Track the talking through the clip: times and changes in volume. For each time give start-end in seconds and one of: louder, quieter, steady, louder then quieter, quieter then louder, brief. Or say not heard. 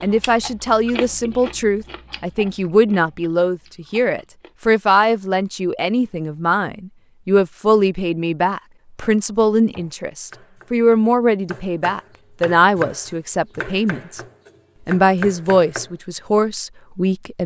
0.0-14.2 steady
14.8-17.4 brief.